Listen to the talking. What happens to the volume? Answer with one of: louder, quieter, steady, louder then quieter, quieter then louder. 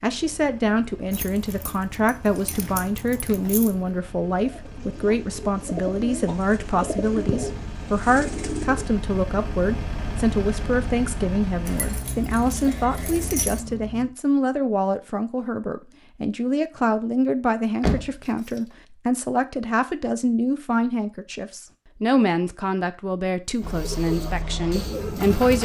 steady.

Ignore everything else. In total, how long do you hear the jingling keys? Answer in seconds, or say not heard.
5 s.